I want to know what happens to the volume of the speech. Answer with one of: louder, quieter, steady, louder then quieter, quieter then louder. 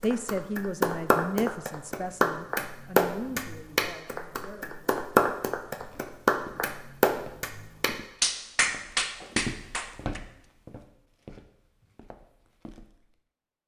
quieter.